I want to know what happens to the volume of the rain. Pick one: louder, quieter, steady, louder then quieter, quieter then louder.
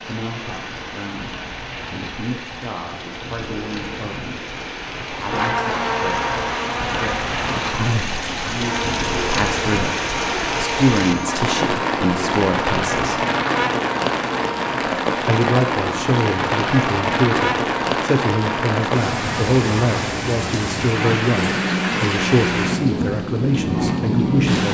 louder.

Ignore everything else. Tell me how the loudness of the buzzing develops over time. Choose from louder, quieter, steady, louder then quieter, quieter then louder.
steady.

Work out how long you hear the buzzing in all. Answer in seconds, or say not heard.
19 s.